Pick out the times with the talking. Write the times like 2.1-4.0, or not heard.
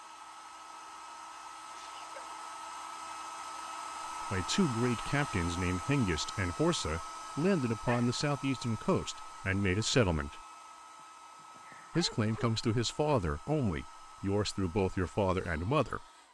4.2-10.4, 11.9-16.1.